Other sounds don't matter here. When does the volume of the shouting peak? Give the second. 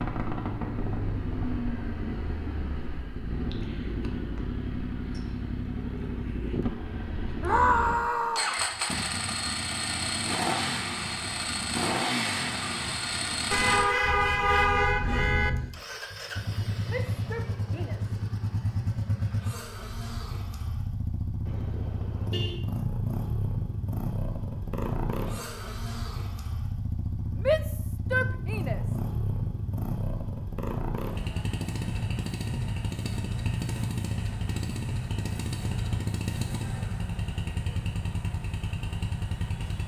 8 s.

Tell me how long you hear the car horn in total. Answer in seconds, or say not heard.
3 s.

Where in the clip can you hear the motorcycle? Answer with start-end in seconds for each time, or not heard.
0.0-39.8.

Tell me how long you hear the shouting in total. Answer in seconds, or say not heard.
4 s.